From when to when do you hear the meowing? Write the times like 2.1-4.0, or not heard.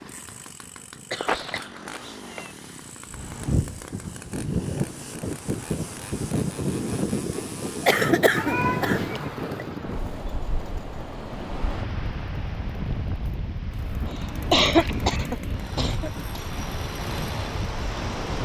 1.2-2.5, 8.3-9.2, 14.2-15.4.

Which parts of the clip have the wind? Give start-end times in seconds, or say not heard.
3.1-18.3.